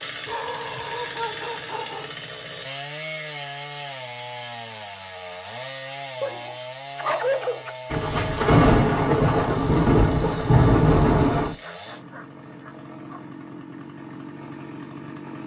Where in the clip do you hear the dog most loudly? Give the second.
7 s.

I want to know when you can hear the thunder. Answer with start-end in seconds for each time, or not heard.
7.9-11.6.